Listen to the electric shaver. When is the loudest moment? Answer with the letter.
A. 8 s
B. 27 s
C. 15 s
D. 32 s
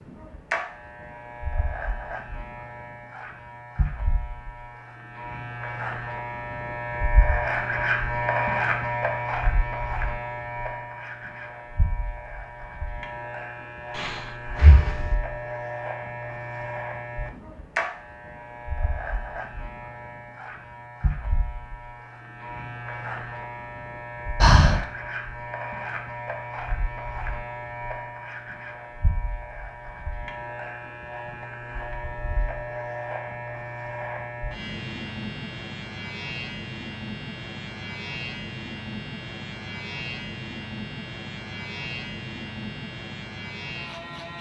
A.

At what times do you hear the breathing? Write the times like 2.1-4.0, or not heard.
13.9-15.1, 24.4-24.9.